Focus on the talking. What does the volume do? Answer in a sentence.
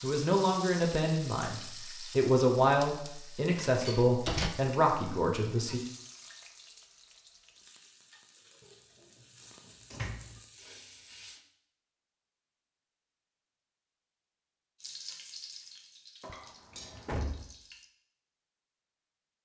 The loudness of the talking stays about the same.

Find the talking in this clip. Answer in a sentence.
The talking can be heard from 0.0 to 5.8 s.